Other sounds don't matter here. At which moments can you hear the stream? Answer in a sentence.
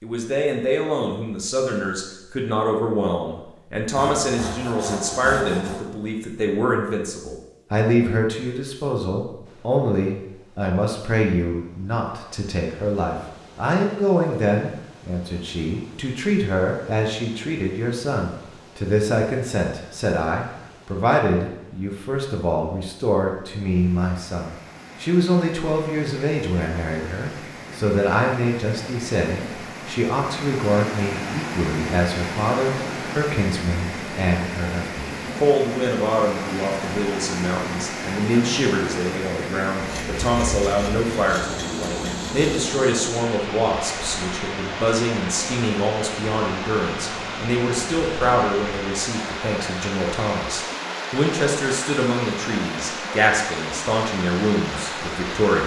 The stream can be heard from 9.4 to 55.6 s.